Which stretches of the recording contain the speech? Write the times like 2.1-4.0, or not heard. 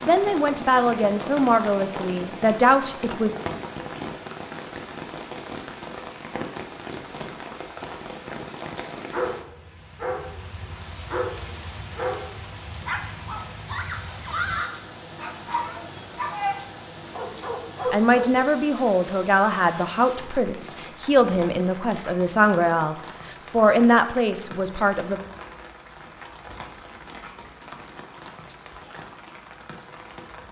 0.0-3.4, 17.9-25.2.